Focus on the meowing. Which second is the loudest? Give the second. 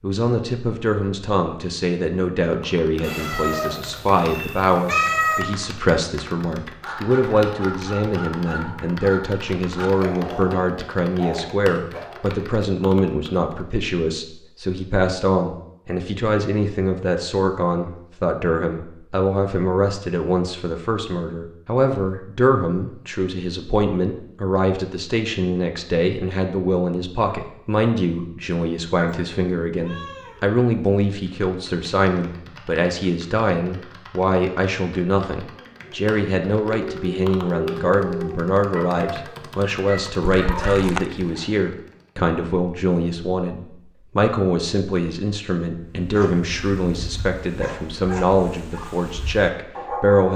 5 s.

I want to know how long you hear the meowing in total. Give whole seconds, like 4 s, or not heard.
4 s.